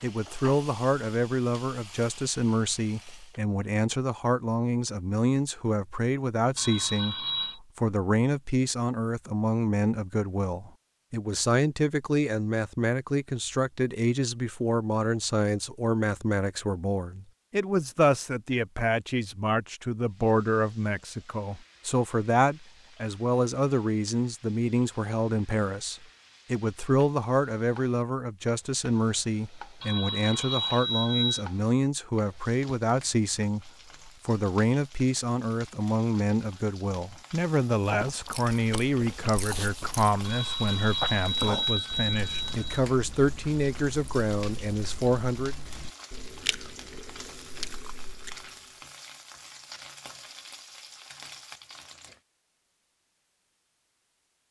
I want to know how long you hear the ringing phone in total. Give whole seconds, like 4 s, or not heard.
5 s.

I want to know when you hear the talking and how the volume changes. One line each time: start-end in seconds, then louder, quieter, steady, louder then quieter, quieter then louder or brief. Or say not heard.
0.0-45.5 steady.